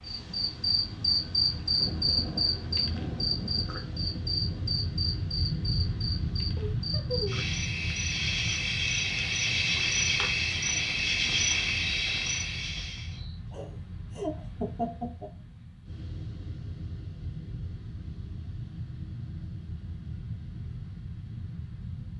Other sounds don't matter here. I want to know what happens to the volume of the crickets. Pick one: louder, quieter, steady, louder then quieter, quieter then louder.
quieter then louder.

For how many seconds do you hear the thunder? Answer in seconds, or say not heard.
3 s.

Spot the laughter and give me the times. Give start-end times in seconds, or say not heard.
6.5-7.5, 13.5-15.3.